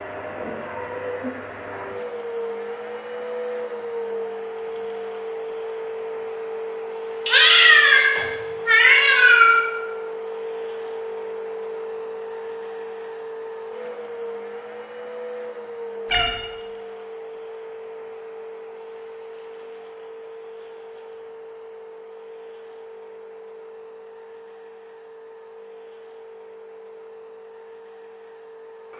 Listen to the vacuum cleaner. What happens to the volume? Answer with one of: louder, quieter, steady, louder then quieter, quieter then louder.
quieter.